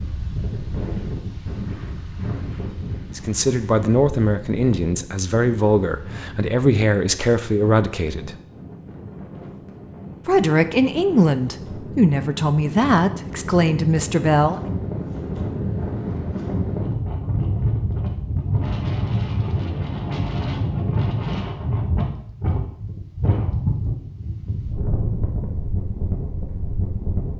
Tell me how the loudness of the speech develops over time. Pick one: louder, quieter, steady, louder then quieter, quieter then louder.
steady.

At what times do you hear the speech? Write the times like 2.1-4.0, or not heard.
3.1-8.3, 10.2-14.6.